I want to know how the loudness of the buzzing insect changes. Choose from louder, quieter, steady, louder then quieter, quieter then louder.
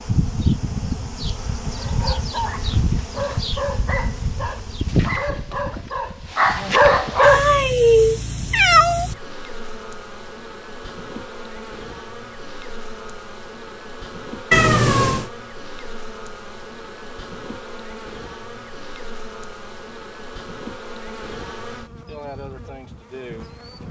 quieter.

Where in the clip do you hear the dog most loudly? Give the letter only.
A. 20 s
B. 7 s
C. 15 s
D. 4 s
B.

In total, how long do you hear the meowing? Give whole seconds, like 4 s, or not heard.
3 s.